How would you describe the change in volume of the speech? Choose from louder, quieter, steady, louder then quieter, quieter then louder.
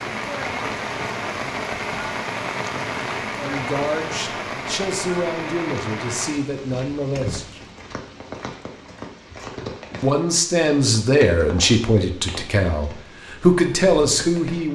louder.